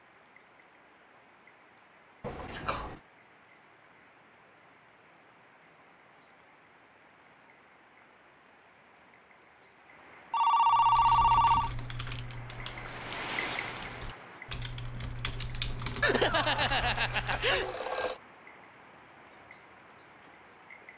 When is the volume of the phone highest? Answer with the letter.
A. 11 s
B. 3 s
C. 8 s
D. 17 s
A.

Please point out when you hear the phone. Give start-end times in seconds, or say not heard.
2.2-3.0, 10.3-11.7, 16.0-18.2.